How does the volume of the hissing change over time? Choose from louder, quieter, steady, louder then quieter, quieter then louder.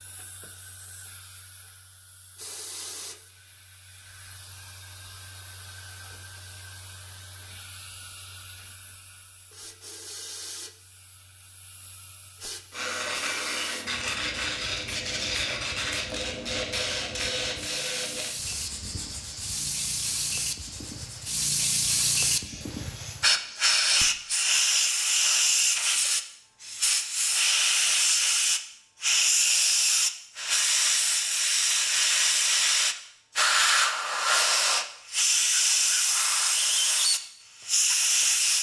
louder.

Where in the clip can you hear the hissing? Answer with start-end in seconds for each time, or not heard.
0.0-38.5.